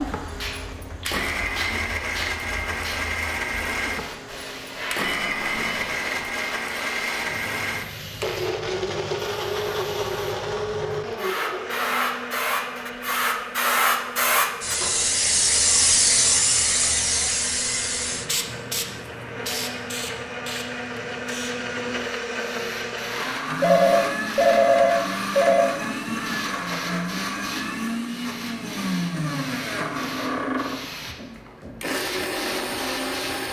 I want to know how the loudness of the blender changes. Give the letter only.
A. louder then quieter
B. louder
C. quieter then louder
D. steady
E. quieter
C.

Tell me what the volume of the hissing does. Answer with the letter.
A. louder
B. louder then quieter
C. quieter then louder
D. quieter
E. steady
B.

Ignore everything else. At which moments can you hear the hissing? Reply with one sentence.
You can hear the hissing from 0.0 to 33.4 s.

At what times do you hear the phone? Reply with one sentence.
The phone can be heard from 5.0 to 6.2 s and from 23.6 to 25.6 s.